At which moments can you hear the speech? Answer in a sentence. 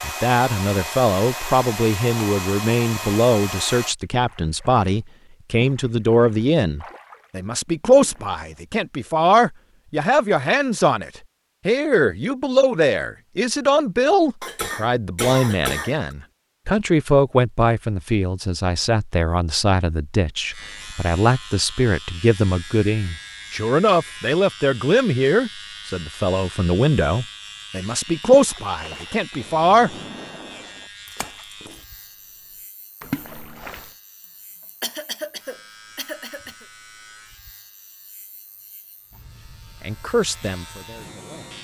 The speech can be heard from 0.0 to 29.9 s and from 39.8 to 41.5 s.